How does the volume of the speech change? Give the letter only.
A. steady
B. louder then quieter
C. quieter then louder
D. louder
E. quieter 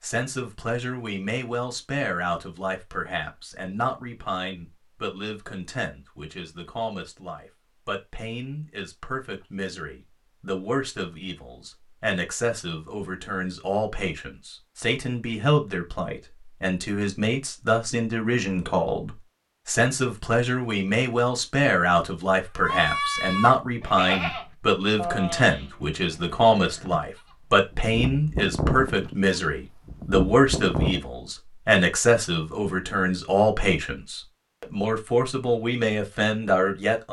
D.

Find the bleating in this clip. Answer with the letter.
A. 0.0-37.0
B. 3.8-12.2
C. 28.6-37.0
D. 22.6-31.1
D.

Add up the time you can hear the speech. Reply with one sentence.
You can hear the speech for 37 seconds altogether.